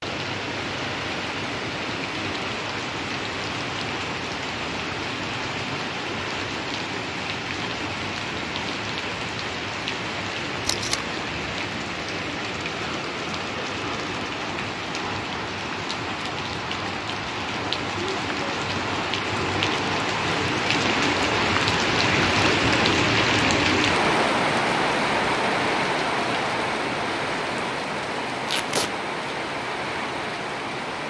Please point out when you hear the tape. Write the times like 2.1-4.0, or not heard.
10.7-11.1, 28.4-28.9.